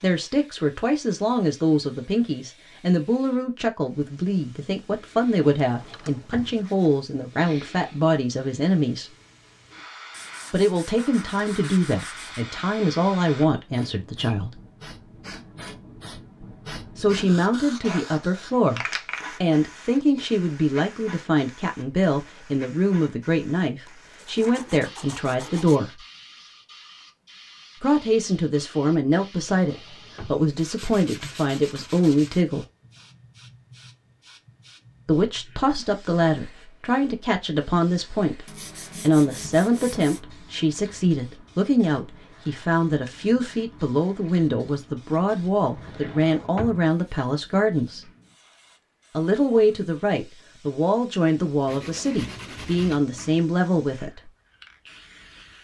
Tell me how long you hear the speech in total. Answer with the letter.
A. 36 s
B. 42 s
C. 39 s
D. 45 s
D.